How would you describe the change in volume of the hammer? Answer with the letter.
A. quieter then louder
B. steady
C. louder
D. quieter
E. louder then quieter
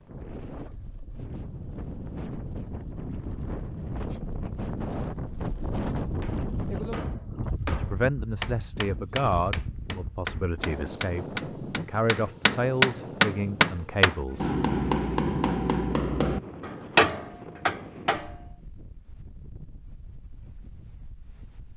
C.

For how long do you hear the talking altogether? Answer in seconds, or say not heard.
7 s.